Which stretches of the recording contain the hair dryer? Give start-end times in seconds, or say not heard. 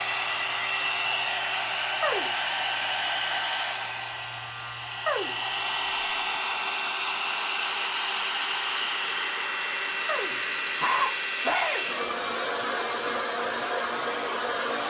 0.0-14.8.